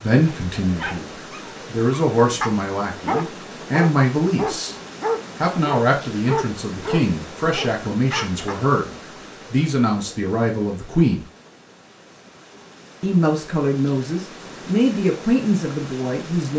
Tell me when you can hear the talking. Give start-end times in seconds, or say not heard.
0.0-4.8, 5.4-11.2, 13.0-16.5.